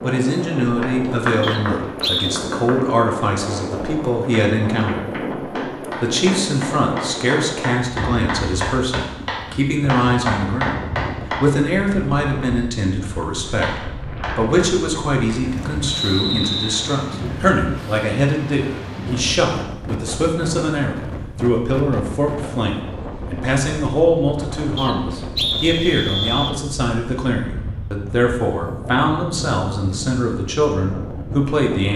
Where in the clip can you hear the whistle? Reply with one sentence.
The whistle can be heard from 1.4 to 2.4 s, from 15.9 to 16.8 s and from 24.8 to 26.6 s.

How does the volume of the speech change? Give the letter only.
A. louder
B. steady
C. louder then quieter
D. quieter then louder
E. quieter
B.